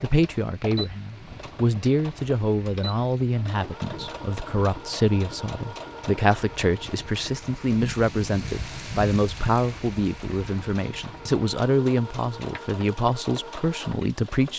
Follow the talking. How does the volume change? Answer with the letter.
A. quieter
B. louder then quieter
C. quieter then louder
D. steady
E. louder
D.